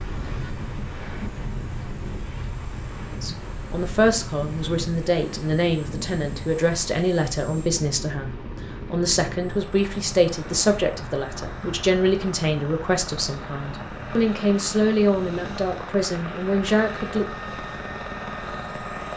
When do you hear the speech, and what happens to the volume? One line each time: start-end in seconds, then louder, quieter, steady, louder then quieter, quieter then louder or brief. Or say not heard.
3.1-17.2 steady.